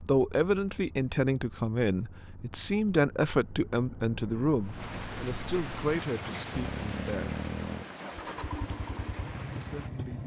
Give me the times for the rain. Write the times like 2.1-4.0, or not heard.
4.6-9.9.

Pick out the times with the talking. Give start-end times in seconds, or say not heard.
0.1-7.4, 9.7-10.2.